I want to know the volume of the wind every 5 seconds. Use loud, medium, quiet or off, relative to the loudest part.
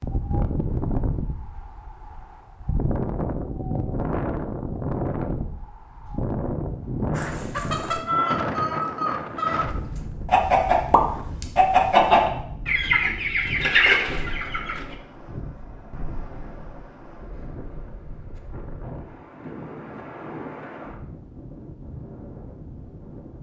loud, loud, medium, medium, medium.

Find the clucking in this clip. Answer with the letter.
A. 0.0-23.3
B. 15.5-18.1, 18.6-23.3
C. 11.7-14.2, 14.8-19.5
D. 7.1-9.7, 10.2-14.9
D.